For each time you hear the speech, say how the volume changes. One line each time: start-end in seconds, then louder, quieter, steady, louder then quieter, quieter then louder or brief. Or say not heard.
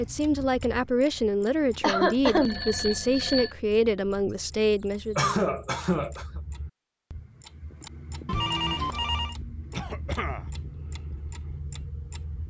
0.0-5.4 steady.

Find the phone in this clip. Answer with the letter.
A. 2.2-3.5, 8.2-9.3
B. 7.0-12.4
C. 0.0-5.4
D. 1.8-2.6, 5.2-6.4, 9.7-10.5
A.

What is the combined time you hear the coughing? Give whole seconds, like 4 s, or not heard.
3 s.